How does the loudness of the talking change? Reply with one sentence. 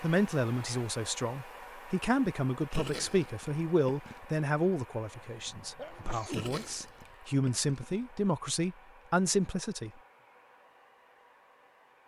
The volume of the talking stays about the same.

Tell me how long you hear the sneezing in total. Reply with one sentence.
You can hear the sneezing for 2 seconds altogether.